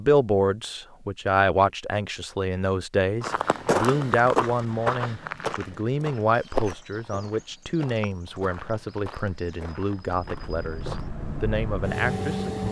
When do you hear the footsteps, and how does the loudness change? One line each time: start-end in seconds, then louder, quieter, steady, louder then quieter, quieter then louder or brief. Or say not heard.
3.2-11.1 quieter.